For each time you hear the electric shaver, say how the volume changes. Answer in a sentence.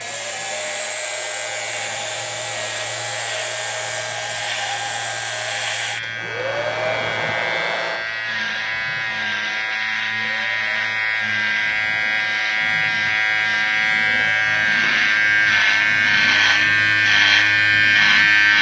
The electric shaver can be heard from 0.0 to 18.5 s, getting louder.